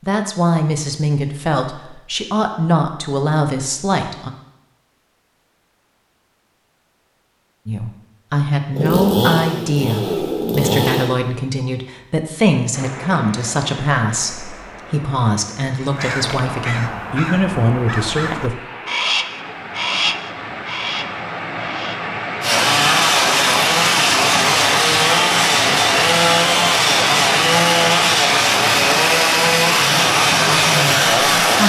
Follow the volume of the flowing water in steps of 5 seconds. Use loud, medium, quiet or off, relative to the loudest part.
off, off, quiet, quiet, loud, loud, loud.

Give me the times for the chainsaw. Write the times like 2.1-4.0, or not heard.
8.7-11.1, 22.4-31.6.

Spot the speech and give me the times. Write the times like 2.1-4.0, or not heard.
0.0-4.3, 7.7-18.6, 29.7-31.6.